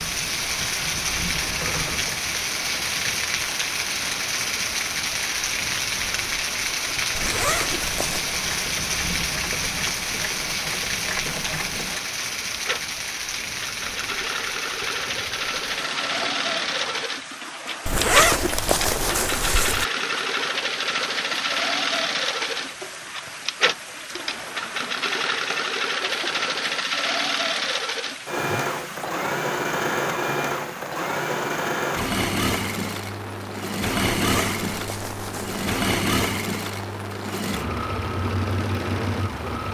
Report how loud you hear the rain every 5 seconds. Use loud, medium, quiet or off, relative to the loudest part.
loud, loud, loud, medium, medium, medium, medium, medium.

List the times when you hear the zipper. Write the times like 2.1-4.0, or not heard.
7.2-8.2, 17.9-19.9, 34.2-35.6.